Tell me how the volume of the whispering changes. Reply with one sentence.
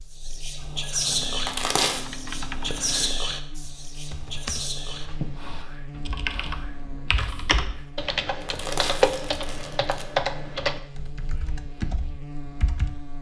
The loudness of the whispering goes down.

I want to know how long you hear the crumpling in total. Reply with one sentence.
The crumpling can be heard for 2 seconds in total.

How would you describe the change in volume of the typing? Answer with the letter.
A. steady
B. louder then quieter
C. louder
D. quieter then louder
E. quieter
B.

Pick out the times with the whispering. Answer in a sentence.
The whispering can be heard from 0.1 to 7.9 s.